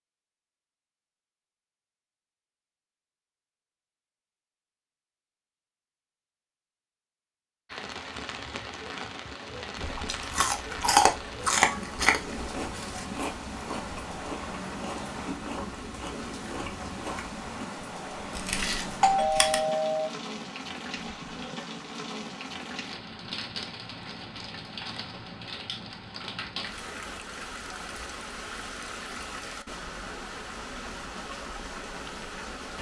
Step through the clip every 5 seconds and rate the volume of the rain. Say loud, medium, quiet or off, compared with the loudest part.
off, loud, loud, loud, loud, loud, loud.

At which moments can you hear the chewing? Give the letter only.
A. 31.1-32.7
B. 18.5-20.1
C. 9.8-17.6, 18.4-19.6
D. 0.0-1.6
C.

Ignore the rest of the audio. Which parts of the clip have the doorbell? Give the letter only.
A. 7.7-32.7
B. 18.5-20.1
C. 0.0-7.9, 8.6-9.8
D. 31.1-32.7
B.